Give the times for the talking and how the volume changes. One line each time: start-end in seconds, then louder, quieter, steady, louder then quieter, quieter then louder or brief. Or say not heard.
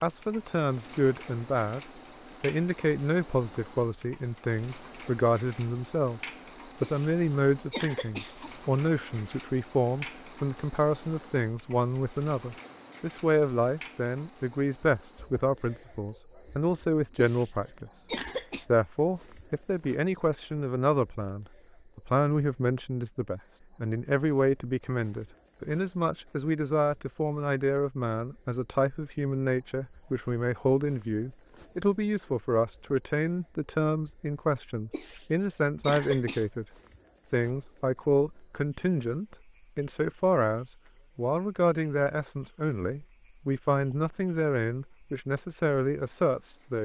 0.0-1.8 brief
2.4-17.9 steady
18.6-36.6 steady
37.3-46.8 steady.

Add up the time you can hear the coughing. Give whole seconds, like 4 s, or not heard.
5 s.